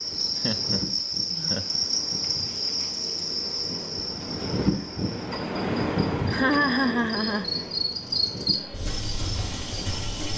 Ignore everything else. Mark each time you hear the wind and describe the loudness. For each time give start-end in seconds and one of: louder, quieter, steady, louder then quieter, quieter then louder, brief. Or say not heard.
0.0-10.3 louder then quieter.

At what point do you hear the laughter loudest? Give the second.
7 s.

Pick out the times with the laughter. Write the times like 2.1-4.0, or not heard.
0.3-0.8, 1.4-1.9, 5.7-7.5.